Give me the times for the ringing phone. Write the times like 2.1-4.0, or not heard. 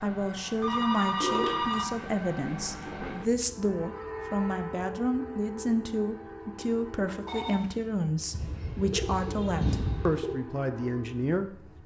0.6-1.9, 7.2-7.8.